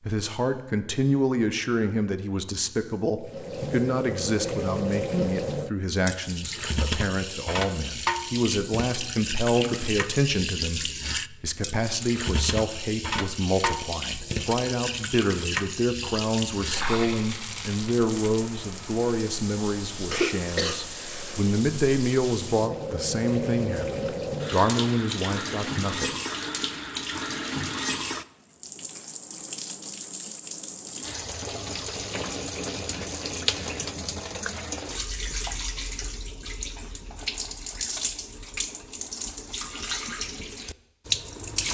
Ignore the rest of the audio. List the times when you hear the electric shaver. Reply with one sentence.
You can't hear the electric shaver here.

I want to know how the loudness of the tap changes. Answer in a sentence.
The volume of the tap stays about the same.